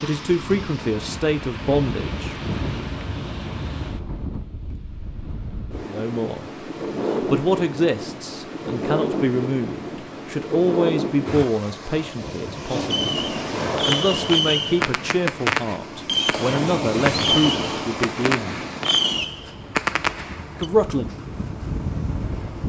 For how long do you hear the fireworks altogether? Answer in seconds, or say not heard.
8 s.